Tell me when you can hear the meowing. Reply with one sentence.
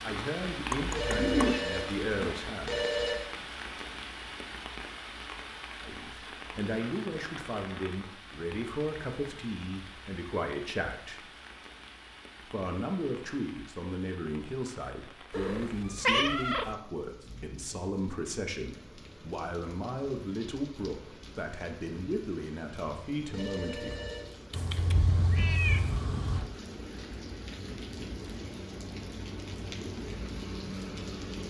The meowing can be heard from 0.7 to 1.6 s, from 15.3 to 16.8 s and from 24.5 to 26.5 s.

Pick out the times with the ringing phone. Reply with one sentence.
You can hear the ringing phone from 0.9 to 3.2 s and from 23.3 to 24.4 s.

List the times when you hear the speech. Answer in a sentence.
The speech can be heard from 0.1 to 2.9 s, from 5.8 to 11.2 s and from 12.5 to 24.1 s.